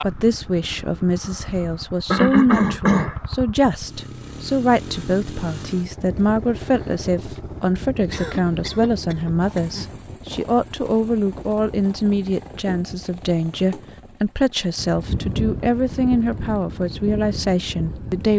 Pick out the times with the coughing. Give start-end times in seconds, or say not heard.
2.1-3.1, 8.1-9.9, 12.6-13.8.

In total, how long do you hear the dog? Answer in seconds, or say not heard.
not heard.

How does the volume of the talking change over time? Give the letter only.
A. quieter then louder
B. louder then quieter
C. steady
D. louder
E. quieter
C.